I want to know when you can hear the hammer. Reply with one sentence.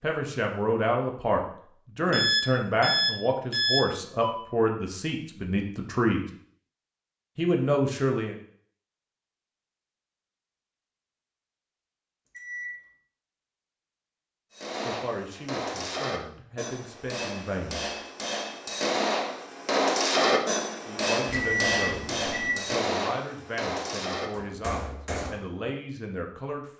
The hammer can be heard from 14.5 to 25.4 s.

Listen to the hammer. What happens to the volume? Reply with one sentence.
The volume of the hammer goes up, then down.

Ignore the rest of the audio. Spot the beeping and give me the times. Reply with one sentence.
The beeping can be heard from 2.0 to 4.3 s, from 12.2 to 12.7 s and from 21.2 to 22.5 s.